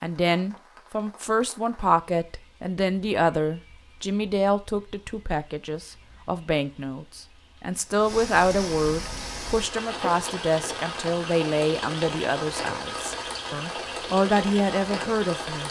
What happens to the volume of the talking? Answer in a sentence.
The loudness of the talking stays about the same.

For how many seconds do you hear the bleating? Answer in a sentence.
You can't hear the bleating here.